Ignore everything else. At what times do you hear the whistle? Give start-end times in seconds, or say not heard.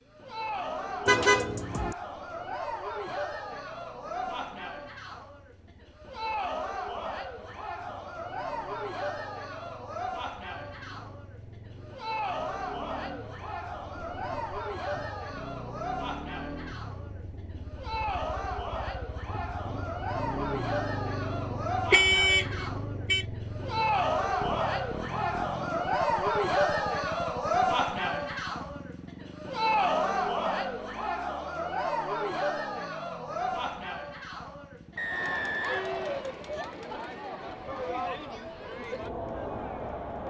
35.0-36.2.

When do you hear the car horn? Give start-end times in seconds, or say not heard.
1.1-1.9, 21.9-23.2.